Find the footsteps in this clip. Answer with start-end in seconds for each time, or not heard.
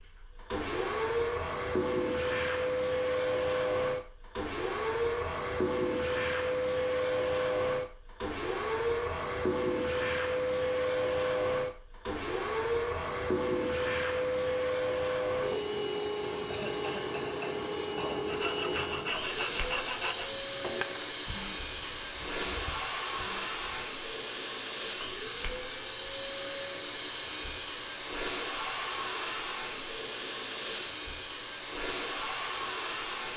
not heard.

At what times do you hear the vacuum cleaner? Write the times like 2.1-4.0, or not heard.
0.0-33.3.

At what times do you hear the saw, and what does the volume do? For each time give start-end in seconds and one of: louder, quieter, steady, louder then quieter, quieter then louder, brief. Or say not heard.
18.2-23.9 quieter.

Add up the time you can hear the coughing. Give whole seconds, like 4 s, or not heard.
2 s.